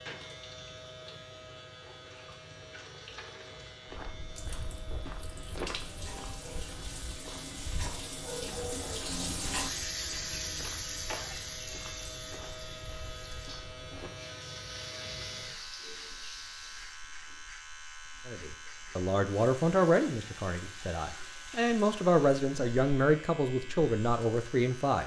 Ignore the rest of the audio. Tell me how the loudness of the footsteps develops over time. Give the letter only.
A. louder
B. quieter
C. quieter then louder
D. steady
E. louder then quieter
B.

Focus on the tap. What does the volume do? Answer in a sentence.
The volume of the tap goes up, then down.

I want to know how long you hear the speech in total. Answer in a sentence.
You can hear the speech for 7 seconds altogether.